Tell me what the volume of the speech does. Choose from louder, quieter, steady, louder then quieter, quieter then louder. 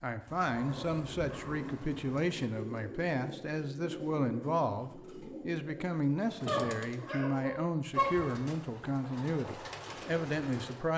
steady.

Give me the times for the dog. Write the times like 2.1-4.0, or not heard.
0.2-2.3, 6.5-8.1.